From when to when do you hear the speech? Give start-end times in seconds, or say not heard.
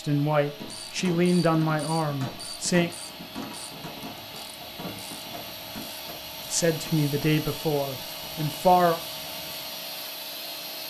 0.0-2.9, 6.5-9.0.